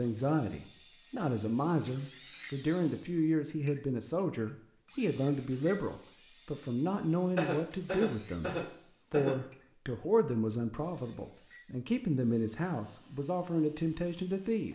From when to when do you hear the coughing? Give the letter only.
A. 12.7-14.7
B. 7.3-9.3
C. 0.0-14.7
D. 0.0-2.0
B.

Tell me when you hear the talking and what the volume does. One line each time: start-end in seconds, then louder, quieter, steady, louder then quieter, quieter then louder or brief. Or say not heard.
0.0-14.7 steady.